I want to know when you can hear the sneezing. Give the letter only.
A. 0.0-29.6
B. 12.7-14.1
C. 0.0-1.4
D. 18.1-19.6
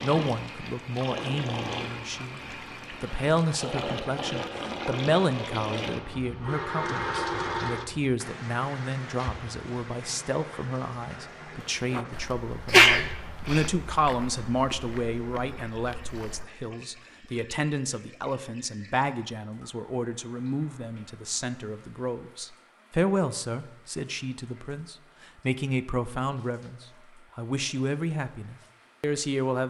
B.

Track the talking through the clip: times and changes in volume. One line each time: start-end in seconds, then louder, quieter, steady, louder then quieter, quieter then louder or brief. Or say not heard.
0.0-29.6 steady.